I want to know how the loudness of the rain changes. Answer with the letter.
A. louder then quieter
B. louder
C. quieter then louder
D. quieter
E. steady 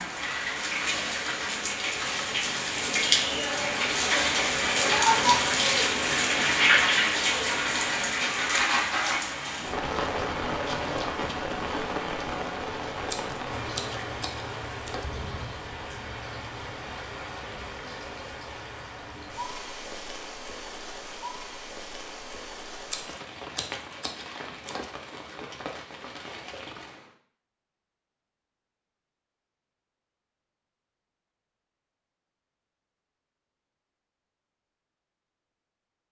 D.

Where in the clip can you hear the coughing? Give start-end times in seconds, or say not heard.
not heard.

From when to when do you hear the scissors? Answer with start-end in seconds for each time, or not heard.
13.1-15.1, 22.9-24.9.